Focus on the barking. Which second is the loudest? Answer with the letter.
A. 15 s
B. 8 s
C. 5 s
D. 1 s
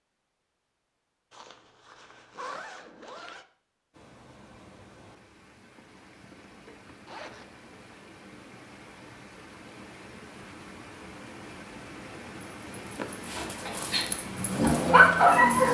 A.